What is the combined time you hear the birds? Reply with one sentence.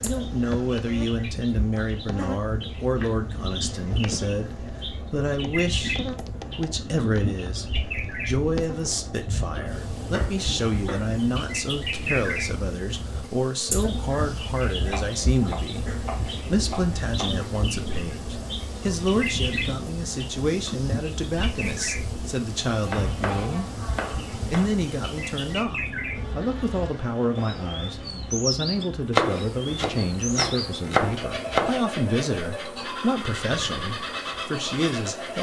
You can hear the birds for 35 seconds altogether.